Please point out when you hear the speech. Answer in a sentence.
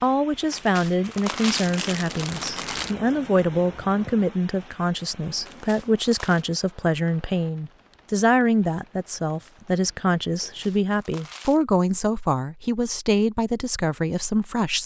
The speech can be heard from 0.0 to 14.8 s.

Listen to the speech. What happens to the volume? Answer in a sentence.
The loudness of the speech stays about the same.